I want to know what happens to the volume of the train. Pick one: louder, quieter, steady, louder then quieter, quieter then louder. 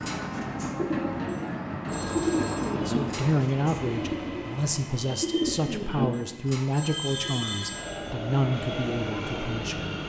quieter then louder.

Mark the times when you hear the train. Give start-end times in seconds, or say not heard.
0.0-10.0.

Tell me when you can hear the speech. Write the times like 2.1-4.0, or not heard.
2.7-10.0.